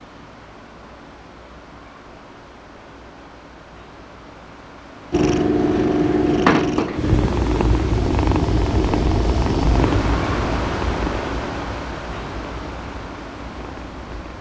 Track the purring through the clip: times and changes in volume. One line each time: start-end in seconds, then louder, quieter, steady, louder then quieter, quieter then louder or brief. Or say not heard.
5.1-14.3 quieter.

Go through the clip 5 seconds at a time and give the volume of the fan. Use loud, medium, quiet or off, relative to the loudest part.
quiet, loud, loud.